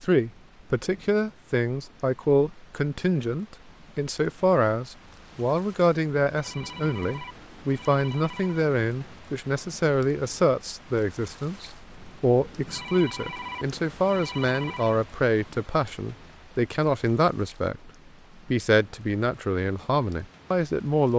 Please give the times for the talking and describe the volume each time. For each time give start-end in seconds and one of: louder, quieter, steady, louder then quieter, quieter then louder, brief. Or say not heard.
0.0-21.1 steady.